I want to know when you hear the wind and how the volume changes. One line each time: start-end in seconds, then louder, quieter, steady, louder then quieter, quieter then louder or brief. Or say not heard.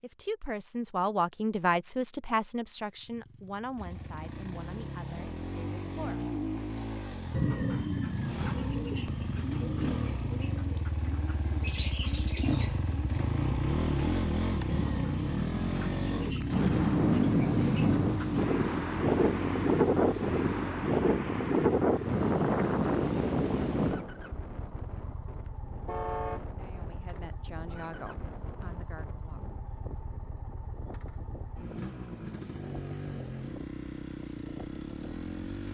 16.5-35.5 quieter.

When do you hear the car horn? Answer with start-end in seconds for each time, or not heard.
25.9-26.5.